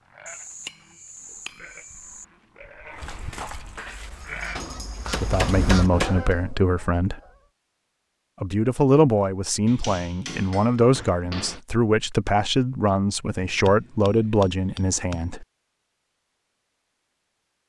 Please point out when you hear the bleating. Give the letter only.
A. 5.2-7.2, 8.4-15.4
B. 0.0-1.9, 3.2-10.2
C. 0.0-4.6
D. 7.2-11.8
C.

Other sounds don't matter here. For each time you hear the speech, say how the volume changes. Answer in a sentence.
The speech can be heard briefly from 5.2 to 7.2 s; and from 8.4 to 15.4 s, at a steady volume.